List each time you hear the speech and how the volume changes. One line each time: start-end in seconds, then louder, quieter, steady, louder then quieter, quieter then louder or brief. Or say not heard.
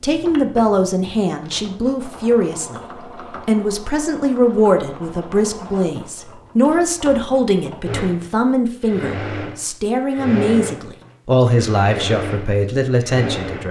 0.0-13.6 steady.